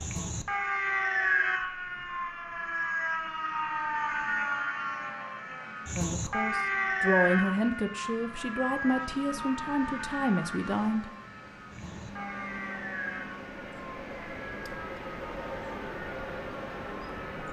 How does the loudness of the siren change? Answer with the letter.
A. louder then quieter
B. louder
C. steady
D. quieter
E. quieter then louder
D.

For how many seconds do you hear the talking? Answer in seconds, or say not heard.
5 s.